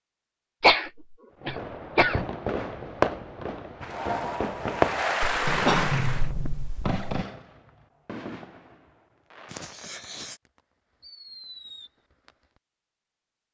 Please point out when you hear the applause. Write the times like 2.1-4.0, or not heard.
3.9-6.3.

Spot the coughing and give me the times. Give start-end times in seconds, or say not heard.
0.6-2.2, 5.5-7.0, 9.5-10.3.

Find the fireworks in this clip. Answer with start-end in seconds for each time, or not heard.
1.4-12.3.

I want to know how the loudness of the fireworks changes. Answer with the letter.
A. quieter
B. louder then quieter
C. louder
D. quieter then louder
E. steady
A.